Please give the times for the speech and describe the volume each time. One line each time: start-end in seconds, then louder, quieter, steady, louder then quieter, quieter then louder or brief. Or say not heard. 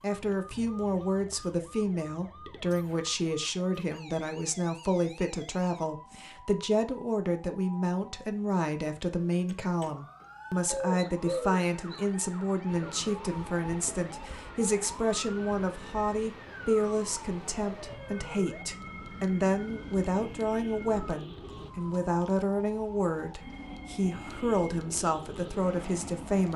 0.0-26.5 steady.